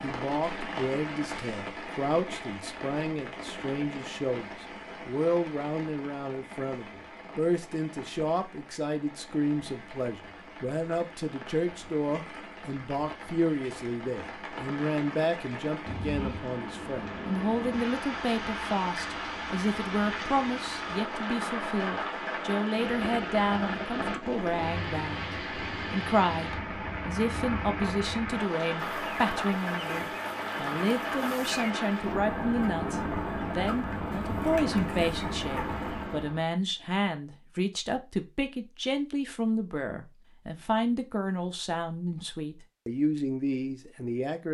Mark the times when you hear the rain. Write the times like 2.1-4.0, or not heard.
0.0-36.5.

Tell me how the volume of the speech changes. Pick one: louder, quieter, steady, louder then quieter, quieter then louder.
steady.